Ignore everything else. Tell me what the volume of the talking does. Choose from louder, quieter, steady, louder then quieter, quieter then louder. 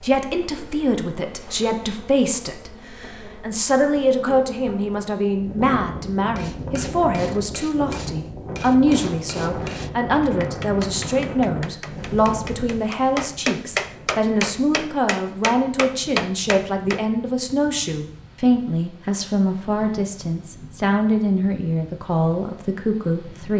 steady.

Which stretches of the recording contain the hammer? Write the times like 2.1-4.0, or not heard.
6.3-17.1.